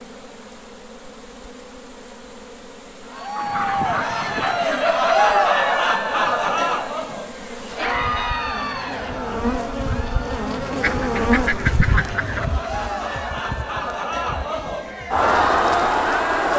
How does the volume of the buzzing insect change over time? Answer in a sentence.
The volume of the buzzing insect goes up, then down.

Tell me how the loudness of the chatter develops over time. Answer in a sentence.
The volume of the chatter goes down, then up.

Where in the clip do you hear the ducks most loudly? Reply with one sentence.
The volume of the ducks peaks at 12 seconds.